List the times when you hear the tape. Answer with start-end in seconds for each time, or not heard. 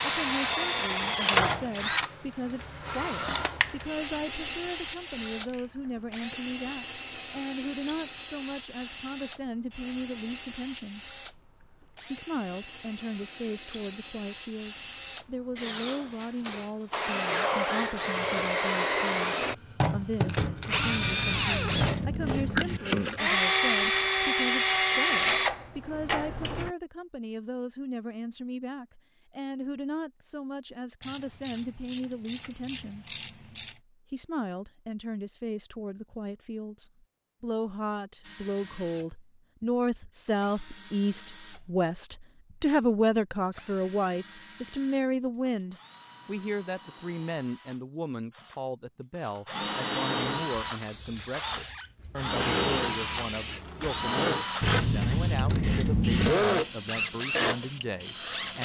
not heard.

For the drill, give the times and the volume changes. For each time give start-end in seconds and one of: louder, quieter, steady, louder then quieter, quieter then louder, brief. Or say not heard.
0.0-26.7 quieter then louder
38.2-58.6 louder.